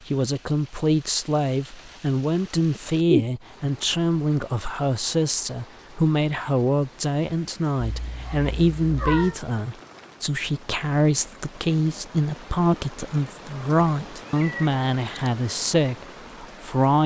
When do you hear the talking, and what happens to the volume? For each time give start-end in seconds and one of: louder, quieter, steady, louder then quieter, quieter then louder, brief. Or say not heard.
0.1-17.0 steady.